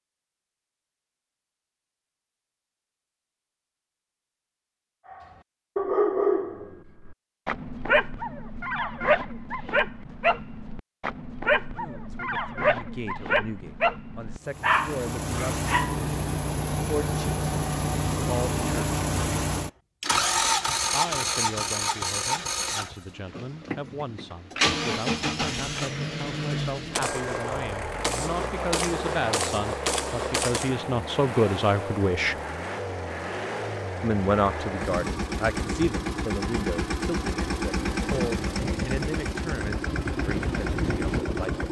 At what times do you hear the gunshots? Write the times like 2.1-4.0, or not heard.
26.9-30.8.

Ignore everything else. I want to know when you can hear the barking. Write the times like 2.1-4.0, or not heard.
5.1-15.9.